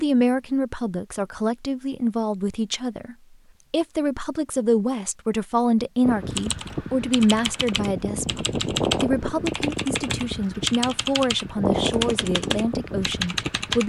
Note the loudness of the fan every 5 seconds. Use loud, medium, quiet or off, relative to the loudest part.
off, loud, loud.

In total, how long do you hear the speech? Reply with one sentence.
The speech can be heard for 14 seconds in total.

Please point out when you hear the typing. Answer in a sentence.
You can hear the typing from 6.3 to 13.8 s.